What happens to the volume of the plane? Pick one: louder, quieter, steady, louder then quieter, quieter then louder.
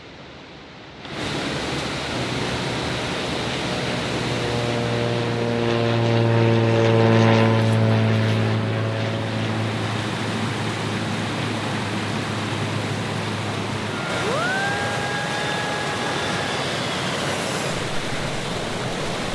louder then quieter.